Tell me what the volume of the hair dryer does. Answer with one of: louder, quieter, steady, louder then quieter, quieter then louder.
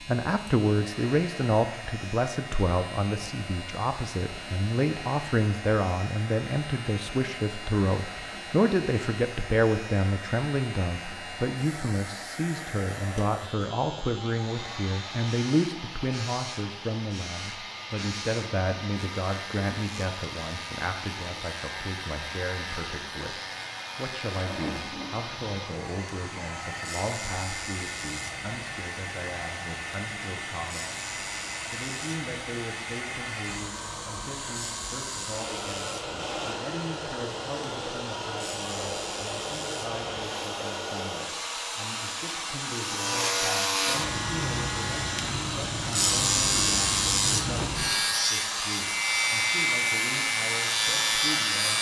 louder.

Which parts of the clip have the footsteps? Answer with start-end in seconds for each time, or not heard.
not heard.